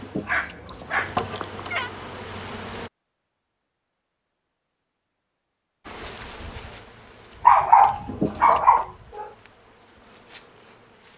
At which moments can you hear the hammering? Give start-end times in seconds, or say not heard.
not heard.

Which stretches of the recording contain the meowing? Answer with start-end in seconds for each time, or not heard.
0.0-1.9, 8.1-8.7.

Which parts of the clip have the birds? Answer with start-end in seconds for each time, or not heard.
not heard.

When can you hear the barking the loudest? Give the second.
8 s.